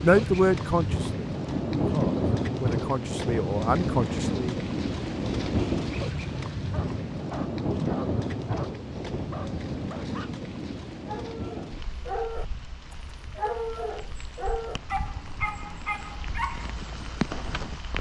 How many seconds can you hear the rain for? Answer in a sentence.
The rain can be heard for 18 seconds in total.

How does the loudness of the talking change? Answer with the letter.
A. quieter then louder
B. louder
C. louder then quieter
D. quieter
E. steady
A.